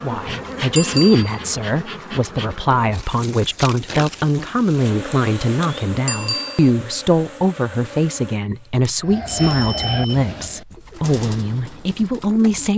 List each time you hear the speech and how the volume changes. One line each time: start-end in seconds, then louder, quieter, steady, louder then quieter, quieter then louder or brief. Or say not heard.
0.0-12.7 steady.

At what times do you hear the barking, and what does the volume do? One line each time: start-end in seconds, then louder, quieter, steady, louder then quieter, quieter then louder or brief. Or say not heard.
not heard.